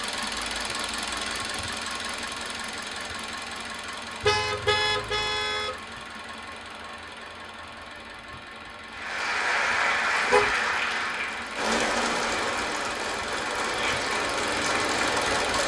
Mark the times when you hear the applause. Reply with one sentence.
The applause can be heard from 8.9 to 15.6 s.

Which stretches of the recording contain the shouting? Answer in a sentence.
You can hear the shouting from 13.7 to 14.1 s.